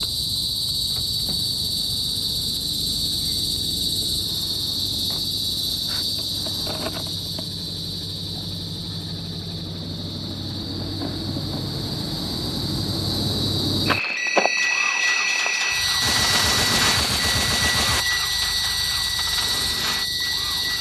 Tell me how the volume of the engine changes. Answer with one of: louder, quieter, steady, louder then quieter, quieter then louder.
louder.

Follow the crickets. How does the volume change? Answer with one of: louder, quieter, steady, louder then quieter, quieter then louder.
quieter then louder.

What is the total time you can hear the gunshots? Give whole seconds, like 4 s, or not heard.
2 s.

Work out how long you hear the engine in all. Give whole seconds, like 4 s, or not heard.
21 s.